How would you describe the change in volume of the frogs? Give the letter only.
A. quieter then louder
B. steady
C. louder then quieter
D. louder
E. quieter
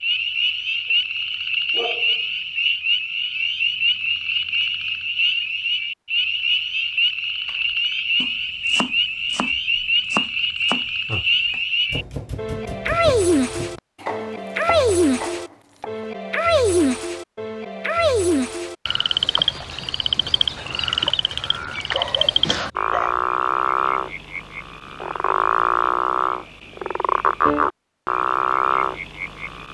B.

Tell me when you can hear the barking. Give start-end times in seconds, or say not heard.
1.7-2.2, 21.9-23.2.